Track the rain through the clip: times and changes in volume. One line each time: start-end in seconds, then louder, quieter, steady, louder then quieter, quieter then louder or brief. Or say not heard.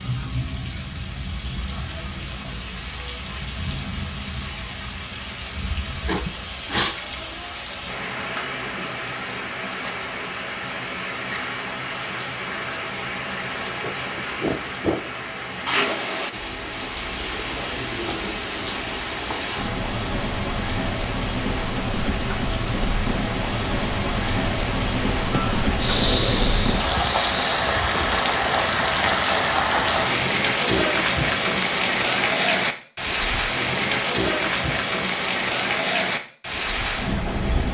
0.0-37.6 louder.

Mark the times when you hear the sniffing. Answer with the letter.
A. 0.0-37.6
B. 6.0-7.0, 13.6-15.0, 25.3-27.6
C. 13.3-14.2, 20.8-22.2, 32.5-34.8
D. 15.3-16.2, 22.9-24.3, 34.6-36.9
B.